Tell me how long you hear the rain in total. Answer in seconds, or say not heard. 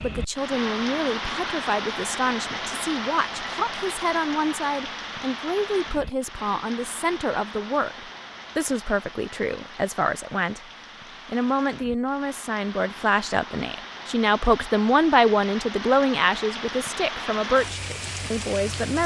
19 s.